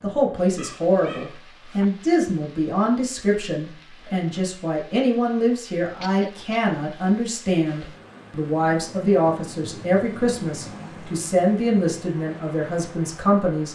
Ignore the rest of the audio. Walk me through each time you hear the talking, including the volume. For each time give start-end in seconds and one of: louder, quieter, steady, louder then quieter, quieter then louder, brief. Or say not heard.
0.0-13.6 steady.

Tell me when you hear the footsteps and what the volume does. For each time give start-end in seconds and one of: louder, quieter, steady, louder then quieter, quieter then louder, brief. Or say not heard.
not heard.